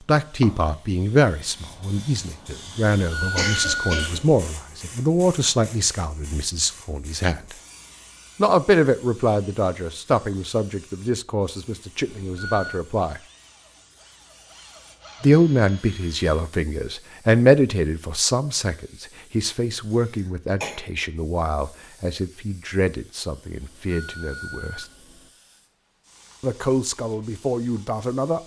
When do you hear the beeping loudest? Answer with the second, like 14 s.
4 s.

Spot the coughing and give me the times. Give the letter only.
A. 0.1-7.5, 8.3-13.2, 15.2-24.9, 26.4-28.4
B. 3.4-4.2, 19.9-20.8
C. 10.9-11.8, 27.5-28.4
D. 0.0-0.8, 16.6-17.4
B.